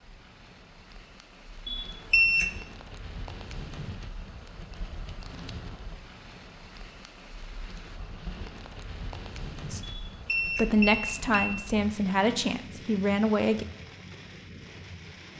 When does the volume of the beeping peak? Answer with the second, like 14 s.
2 s.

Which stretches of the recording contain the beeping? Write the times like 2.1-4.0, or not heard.
1.6-2.5, 9.8-11.6.